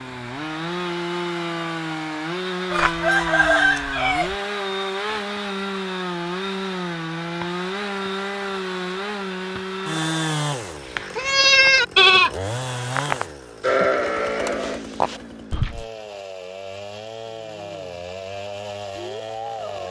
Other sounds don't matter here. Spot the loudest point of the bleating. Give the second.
12 s.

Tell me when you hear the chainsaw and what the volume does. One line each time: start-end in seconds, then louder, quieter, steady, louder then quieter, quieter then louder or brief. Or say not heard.
0.0-19.8 quieter.